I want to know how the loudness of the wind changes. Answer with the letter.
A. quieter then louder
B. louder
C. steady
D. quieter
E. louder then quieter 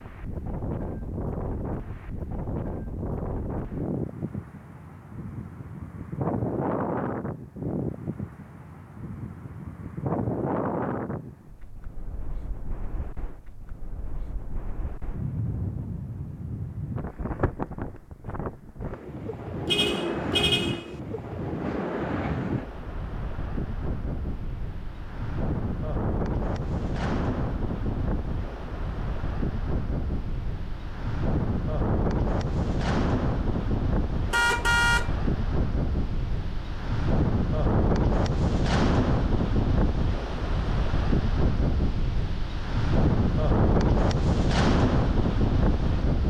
B.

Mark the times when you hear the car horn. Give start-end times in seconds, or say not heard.
19.6-21.0, 34.3-35.1.